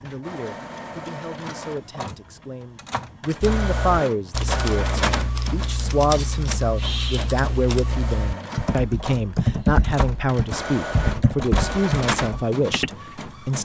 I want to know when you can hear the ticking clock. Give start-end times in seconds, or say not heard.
not heard.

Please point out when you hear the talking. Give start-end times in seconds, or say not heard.
0.0-13.6.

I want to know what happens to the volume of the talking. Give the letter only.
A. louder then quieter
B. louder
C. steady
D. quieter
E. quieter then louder
B.